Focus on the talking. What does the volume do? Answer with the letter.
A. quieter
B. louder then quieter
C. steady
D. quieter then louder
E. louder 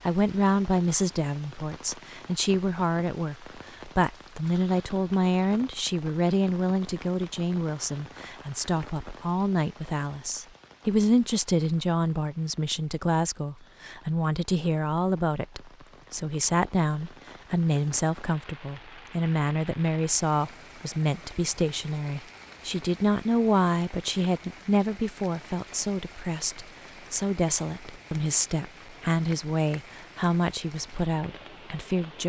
C.